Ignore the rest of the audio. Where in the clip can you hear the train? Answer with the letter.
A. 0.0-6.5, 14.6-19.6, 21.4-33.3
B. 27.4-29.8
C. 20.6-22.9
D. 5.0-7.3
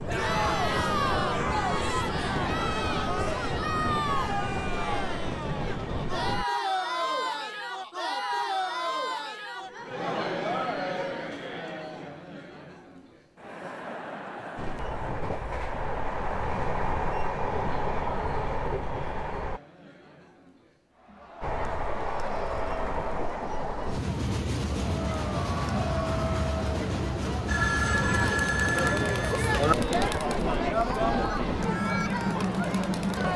A.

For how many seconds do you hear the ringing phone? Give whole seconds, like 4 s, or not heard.
2 s.